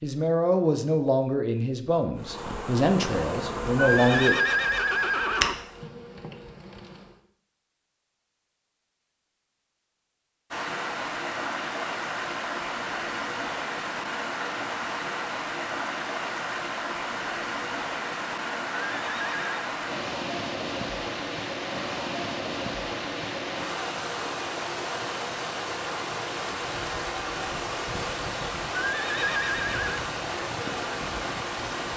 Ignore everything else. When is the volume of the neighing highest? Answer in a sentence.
The volume of the neighing peaks at 4 seconds.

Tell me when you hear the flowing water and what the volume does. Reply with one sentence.
You can hear the flowing water from 10.5 to 31.9 s, at a steady volume.